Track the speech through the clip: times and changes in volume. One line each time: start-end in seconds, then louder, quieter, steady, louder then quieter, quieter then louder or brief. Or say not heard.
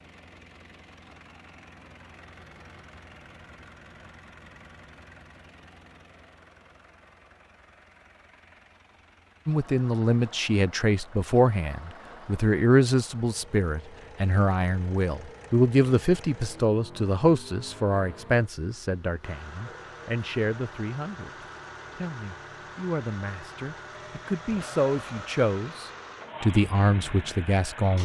9.4-28.0 quieter then louder.